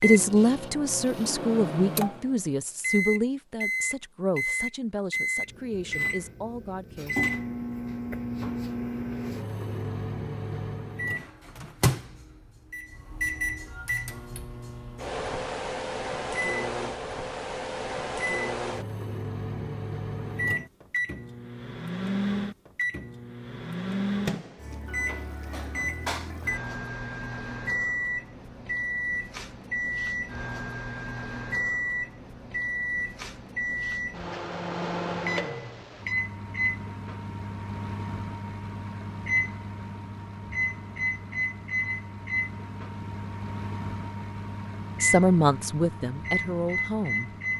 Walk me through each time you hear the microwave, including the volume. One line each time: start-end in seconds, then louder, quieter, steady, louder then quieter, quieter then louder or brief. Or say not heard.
0.0-47.5 steady.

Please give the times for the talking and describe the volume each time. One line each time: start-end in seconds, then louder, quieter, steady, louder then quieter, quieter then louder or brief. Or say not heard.
0.0-7.2 quieter
45.0-47.3 brief.